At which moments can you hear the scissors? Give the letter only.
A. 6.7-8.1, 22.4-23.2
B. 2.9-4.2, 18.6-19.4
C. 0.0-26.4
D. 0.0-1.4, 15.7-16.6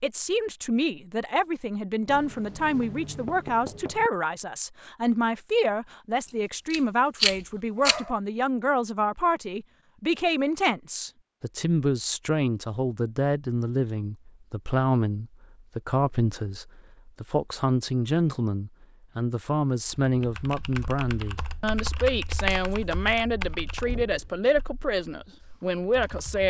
A.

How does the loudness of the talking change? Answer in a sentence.
The loudness of the talking stays about the same.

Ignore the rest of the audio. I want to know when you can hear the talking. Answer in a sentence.
You can hear the talking from 0.0 to 26.4 s.